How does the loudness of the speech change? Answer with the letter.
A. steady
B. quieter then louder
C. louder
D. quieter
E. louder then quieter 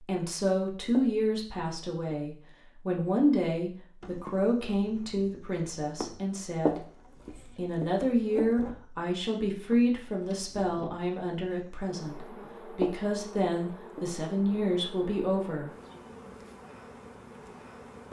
A.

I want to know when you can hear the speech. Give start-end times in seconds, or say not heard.
0.0-6.8, 7.5-15.7.